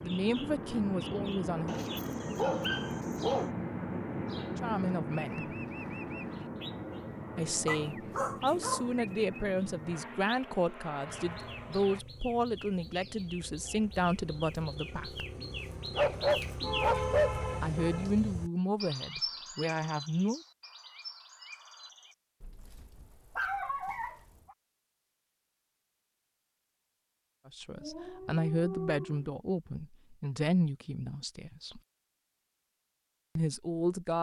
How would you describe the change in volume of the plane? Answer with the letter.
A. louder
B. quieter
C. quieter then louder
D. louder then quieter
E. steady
B.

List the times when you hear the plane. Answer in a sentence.
You can hear the plane from 0.0 to 12.1 s.